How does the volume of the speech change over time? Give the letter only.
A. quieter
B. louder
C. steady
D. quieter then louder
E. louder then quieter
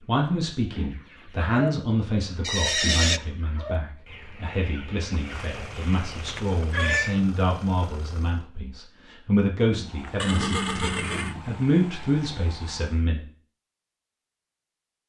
D.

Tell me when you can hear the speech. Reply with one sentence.
You can hear the speech from 0.1 to 13.2 s.